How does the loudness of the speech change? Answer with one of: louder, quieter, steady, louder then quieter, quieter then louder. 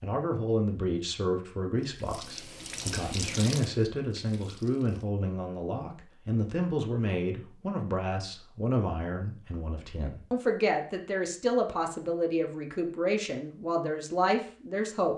steady.